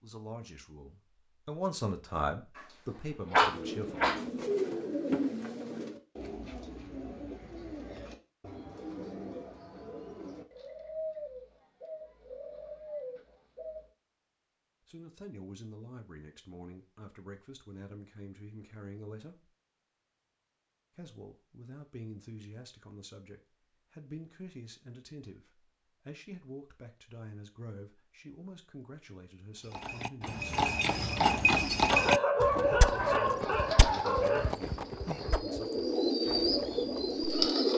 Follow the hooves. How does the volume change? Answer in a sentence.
The volume of the hooves goes down.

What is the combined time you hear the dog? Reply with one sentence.
You can hear the dog for 4 seconds altogether.